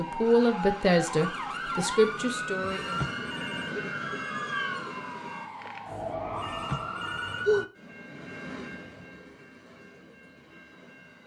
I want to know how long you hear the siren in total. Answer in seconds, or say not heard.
8 s.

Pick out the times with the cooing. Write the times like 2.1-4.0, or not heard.
not heard.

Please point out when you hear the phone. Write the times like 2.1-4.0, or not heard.
2.6-3.8, 6.3-7.7.